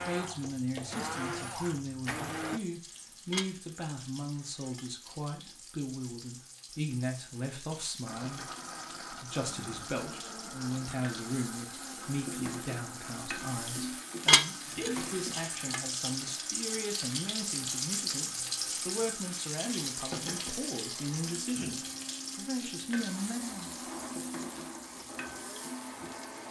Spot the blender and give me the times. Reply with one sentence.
You can hear the blender from 0.0 to 2.6 s and from 8.1 to 26.4 s.